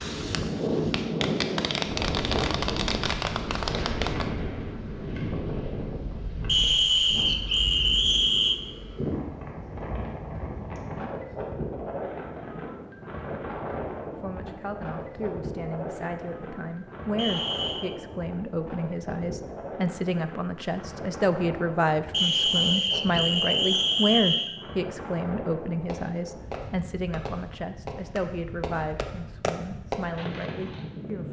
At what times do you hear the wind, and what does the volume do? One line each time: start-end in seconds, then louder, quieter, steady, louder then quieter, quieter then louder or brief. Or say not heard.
0.0-31.2 quieter.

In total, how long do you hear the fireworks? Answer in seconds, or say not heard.
9 s.